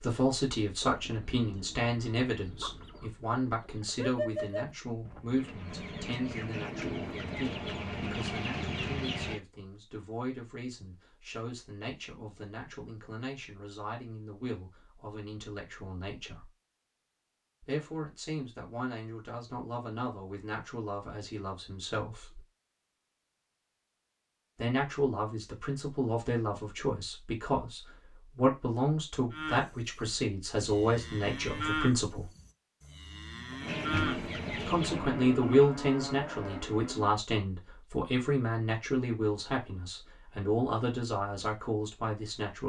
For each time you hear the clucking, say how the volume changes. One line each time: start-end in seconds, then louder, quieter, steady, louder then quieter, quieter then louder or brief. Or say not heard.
0.8-9.4 louder
33.6-35.7 brief.